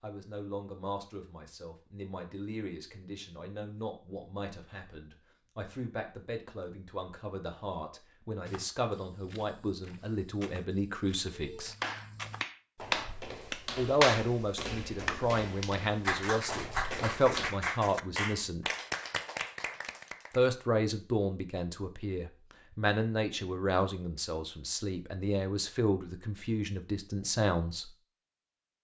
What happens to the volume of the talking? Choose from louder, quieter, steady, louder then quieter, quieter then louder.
louder.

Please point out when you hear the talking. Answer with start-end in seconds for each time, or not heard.
0.0-11.8, 13.8-18.7, 20.3-27.9.